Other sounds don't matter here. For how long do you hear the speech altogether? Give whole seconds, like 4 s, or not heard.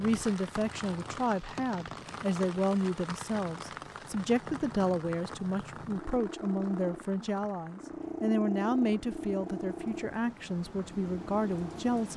12 s.